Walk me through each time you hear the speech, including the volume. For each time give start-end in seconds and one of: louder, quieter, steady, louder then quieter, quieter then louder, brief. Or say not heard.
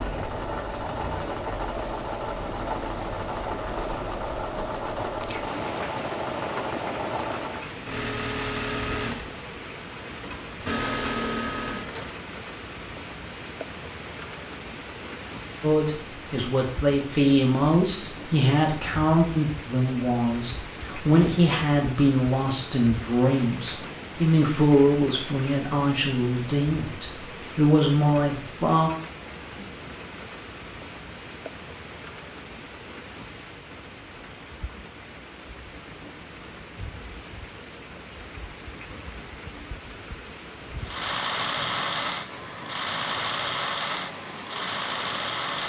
15.6-28.9 steady.